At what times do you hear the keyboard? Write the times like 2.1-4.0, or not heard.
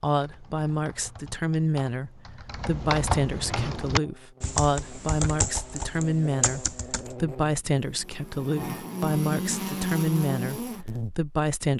0.1-7.2.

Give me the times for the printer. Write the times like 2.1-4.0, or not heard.
not heard.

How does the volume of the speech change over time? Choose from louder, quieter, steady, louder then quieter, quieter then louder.
steady.